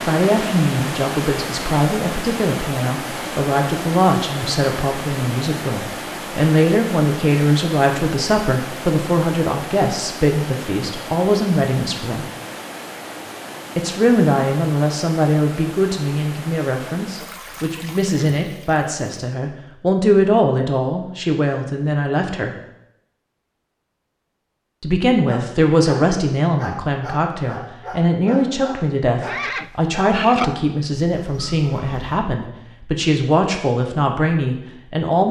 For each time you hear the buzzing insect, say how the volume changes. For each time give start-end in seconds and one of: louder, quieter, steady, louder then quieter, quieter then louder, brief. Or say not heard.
not heard.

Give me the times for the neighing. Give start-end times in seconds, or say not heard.
29.1-30.4.